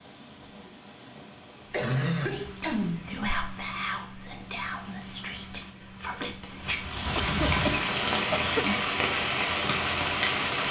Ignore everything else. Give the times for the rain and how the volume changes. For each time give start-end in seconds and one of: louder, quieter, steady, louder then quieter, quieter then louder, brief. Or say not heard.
0.0-10.6 louder.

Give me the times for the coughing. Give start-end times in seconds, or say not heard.
1.7-3.1, 7.2-8.7.